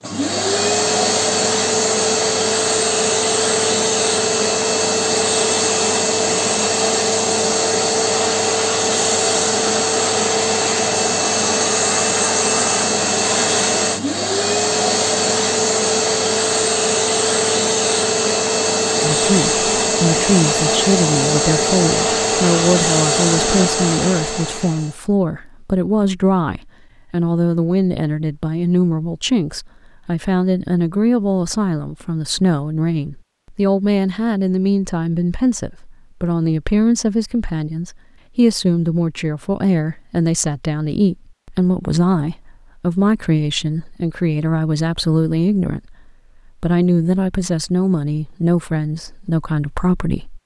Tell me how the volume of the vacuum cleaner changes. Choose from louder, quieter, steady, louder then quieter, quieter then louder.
steady.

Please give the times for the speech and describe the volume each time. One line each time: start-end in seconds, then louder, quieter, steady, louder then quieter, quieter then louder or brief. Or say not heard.
19.0-50.4 steady.